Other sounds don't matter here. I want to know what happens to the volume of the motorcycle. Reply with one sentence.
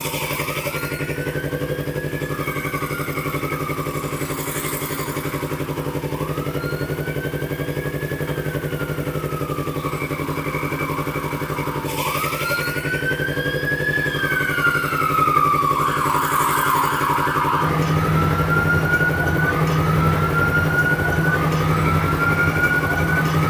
The volume of the motorcycle stays about the same.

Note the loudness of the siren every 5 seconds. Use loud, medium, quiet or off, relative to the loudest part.
quiet, quiet, medium, loud, loud.